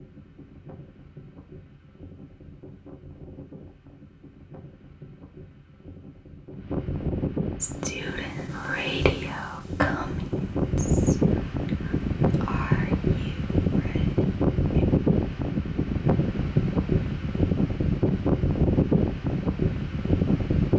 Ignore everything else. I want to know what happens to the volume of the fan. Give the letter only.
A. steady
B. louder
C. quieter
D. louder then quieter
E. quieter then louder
B.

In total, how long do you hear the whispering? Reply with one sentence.
The whispering can be heard for 7 seconds in total.